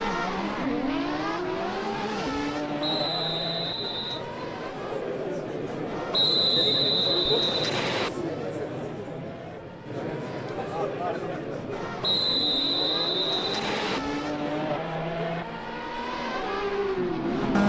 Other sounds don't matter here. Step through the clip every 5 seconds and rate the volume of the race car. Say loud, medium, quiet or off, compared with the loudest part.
loud, quiet, medium, loud.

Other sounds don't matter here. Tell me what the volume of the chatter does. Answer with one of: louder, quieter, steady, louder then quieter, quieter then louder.
louder then quieter.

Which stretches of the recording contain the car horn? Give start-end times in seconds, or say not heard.
not heard.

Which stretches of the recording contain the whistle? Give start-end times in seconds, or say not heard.
2.8-4.2, 6.1-8.1, 12.0-14.0.